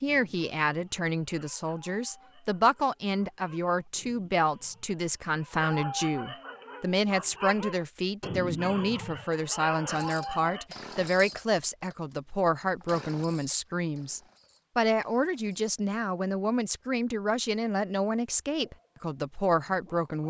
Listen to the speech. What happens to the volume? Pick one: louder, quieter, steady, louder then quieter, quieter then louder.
steady.